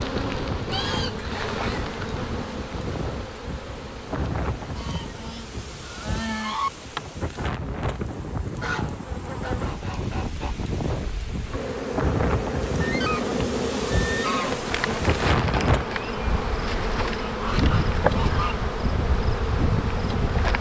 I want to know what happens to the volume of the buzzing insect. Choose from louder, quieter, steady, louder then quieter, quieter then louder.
quieter then louder.